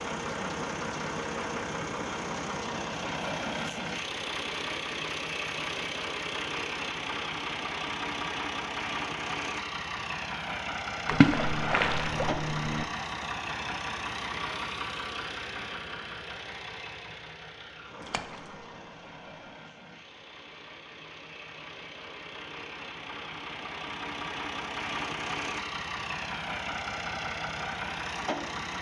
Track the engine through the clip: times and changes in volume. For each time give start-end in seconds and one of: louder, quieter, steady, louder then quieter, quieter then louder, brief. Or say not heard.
0.0-28.7 quieter then louder.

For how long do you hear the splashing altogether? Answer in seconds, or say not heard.
2 s.